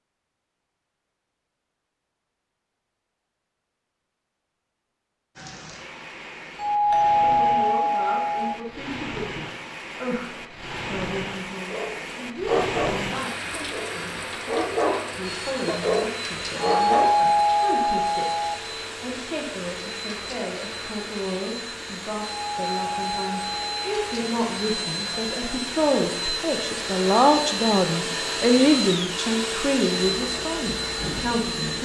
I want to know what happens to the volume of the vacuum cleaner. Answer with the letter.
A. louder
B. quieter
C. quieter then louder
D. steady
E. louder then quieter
A.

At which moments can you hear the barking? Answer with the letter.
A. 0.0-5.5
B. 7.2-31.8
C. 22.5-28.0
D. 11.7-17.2
D.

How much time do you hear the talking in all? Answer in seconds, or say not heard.
25 s.